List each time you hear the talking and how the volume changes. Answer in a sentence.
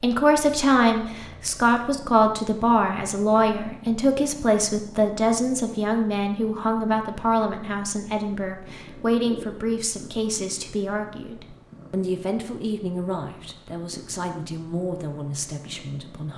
You can hear the talking from 0.0 to 16.3 s, getting quieter.